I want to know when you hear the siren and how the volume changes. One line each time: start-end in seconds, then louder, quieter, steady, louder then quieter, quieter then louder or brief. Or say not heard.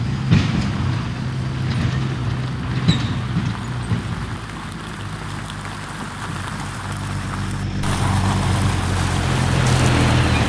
not heard.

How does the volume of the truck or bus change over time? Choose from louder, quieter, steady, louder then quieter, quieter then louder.
quieter then louder.